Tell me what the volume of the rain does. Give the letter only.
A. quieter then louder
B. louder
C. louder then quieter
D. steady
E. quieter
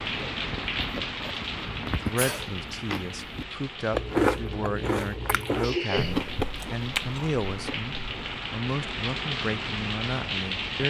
A.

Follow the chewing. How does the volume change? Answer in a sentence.
The volume of the chewing goes up, then down.